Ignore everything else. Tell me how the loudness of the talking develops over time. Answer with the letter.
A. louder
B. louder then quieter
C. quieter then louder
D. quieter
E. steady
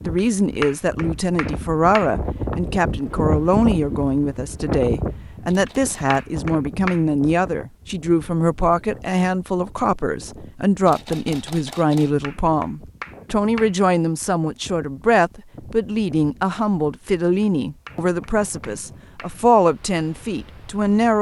E.